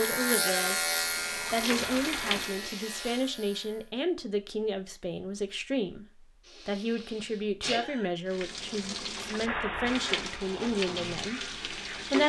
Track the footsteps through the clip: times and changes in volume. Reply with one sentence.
The footsteps can't be heard in this clip.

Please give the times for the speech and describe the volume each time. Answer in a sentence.
You can hear the speech briefly from 0.0 to 0.8 s; and from 1.5 to 12.2 s, at a steady volume.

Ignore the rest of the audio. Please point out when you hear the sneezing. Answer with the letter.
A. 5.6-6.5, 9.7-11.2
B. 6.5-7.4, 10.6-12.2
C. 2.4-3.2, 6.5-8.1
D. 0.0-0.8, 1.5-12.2
C.